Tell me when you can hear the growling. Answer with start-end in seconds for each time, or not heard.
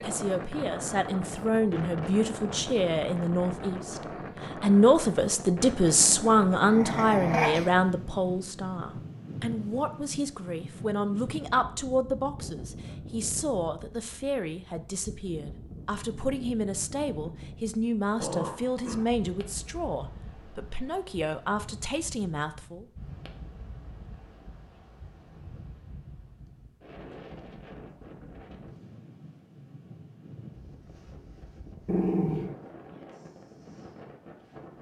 6.0-7.7, 18.1-19.1, 31.9-32.5.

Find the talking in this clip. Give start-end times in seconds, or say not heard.
0.0-4.0, 4.6-22.9.